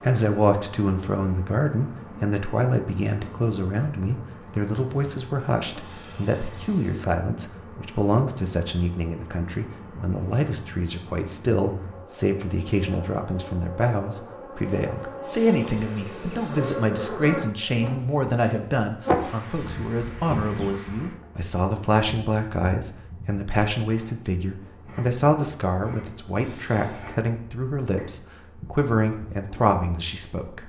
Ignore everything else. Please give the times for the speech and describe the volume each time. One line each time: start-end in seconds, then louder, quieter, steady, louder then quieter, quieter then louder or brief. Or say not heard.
0.0-30.6 steady.